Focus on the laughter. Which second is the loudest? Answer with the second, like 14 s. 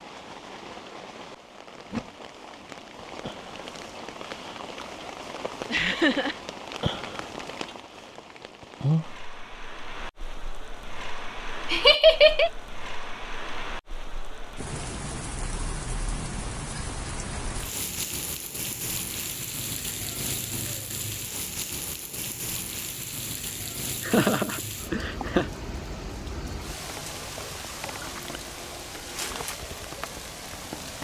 12 s.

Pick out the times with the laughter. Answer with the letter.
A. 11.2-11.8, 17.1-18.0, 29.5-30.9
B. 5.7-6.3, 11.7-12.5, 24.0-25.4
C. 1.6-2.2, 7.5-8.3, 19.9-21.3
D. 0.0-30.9
B.